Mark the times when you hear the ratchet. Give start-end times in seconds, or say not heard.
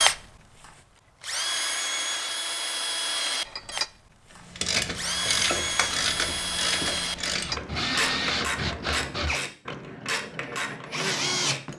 4.5-11.7.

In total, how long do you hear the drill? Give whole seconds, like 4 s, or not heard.
12 s.